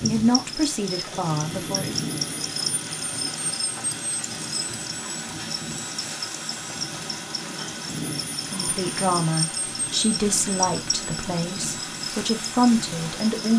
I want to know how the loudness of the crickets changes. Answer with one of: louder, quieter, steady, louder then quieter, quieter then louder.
steady.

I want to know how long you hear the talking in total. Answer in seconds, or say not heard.
7 s.